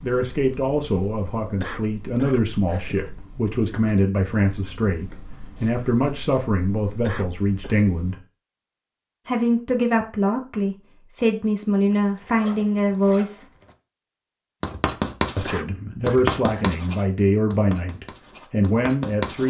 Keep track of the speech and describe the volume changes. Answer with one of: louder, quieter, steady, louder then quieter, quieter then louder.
steady.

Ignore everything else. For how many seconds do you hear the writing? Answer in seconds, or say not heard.
13 s.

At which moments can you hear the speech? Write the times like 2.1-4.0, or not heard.
0.0-8.2, 9.2-13.5, 15.3-19.4.